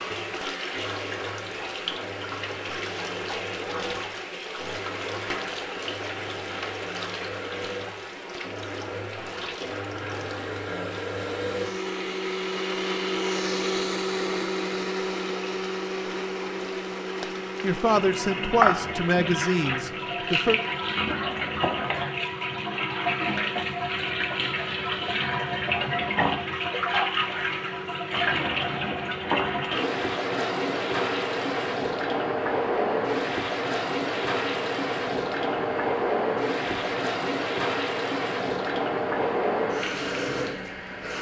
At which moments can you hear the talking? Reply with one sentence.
You can hear the talking from 17.6 to 20.6 s.